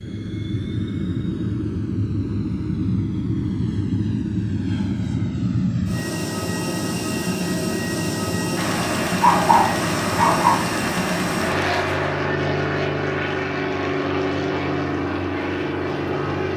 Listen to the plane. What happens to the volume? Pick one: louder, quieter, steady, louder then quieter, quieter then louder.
steady.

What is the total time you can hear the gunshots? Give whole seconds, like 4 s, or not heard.
4 s.